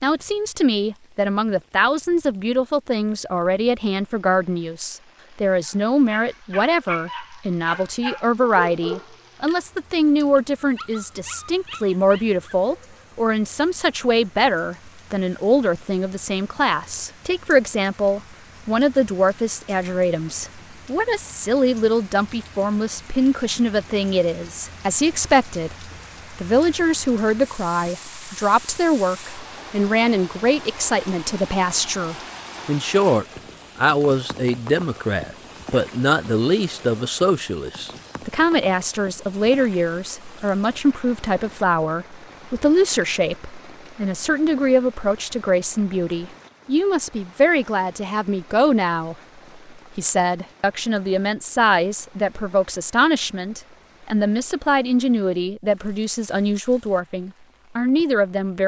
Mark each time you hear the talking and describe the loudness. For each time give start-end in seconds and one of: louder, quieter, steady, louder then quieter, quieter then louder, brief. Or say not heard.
0.0-49.1 steady
50.0-58.6 steady.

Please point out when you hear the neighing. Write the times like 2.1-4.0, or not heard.
not heard.